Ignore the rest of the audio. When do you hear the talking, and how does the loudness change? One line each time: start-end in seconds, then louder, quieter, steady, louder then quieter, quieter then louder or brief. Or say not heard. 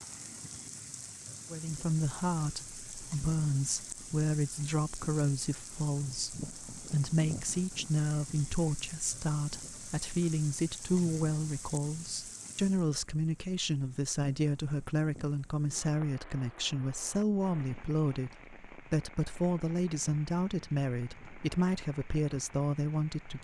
1.5-23.4 steady.